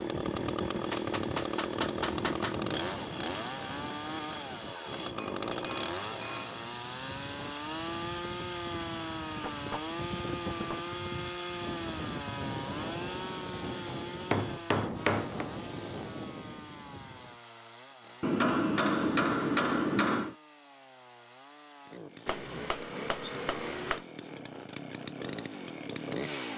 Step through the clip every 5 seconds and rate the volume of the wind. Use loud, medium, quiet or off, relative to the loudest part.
loud, medium, loud, loud, off, off.